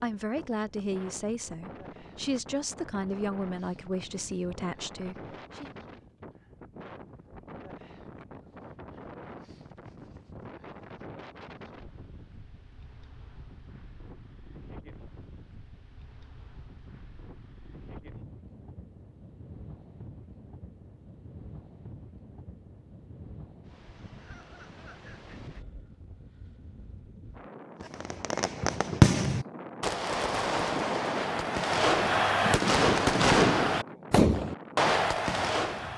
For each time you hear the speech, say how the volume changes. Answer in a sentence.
You can hear the speech from 0.0 to 5.7 s, at a steady volume.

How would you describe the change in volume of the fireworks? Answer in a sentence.
The loudness of the fireworks goes down, then up.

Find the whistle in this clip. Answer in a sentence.
The whistle can't be heard in this clip.